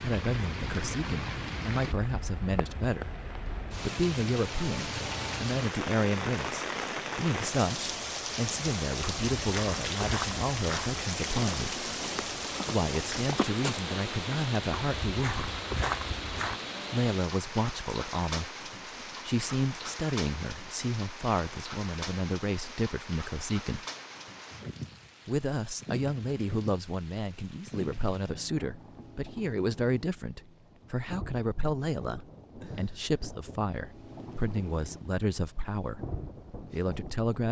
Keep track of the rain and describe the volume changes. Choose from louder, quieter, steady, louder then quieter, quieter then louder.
quieter.